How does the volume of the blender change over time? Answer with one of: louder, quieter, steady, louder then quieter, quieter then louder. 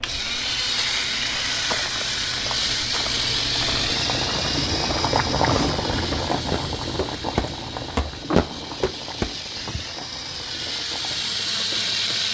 quieter then louder.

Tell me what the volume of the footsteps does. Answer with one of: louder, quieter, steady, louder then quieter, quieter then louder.
louder.